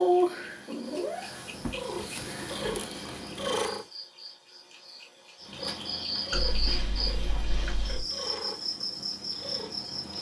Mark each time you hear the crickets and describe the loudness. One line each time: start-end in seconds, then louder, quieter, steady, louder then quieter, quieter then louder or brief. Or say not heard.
0.0-10.1 louder.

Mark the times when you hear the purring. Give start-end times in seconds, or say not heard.
0.0-3.9, 5.4-10.1.